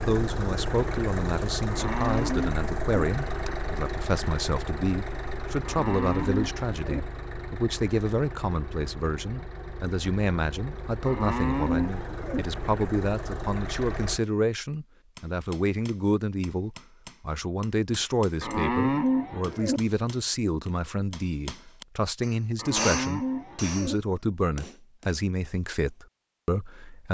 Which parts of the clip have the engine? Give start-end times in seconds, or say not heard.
0.0-14.2.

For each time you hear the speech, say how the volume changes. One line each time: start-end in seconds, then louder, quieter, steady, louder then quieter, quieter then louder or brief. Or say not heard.
0.1-27.1 steady.